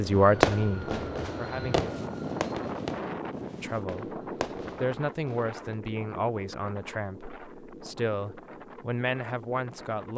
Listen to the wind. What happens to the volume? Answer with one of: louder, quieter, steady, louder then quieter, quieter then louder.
quieter.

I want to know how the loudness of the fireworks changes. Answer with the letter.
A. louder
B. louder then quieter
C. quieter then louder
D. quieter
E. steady
C.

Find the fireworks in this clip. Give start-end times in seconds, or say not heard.
0.1-5.6.